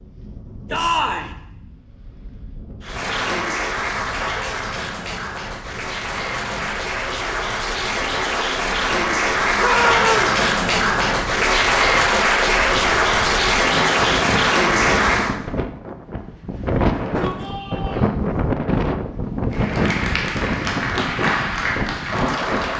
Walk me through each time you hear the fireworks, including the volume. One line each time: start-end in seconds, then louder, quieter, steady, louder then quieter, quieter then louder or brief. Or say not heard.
not heard.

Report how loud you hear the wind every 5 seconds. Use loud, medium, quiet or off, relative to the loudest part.
quiet, quiet, medium, loud, loud.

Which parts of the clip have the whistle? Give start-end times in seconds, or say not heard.
not heard.